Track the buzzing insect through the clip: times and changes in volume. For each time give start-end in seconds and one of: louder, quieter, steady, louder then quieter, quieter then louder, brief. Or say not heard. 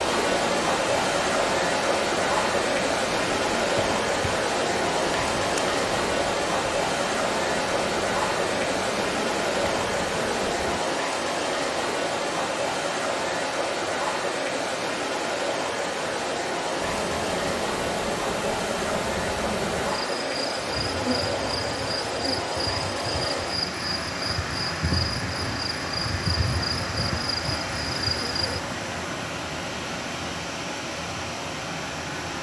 0.0-10.8 steady
16.8-28.6 steady.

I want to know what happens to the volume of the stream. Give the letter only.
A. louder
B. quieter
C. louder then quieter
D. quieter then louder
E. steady
B.